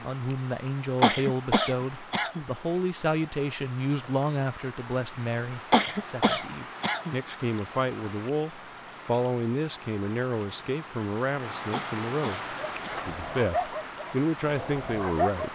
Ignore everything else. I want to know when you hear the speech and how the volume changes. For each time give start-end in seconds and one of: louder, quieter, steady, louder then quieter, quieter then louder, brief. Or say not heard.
0.0-15.5 steady.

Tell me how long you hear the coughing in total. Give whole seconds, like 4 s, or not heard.
4 s.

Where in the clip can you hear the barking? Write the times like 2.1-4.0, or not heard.
12.6-15.5.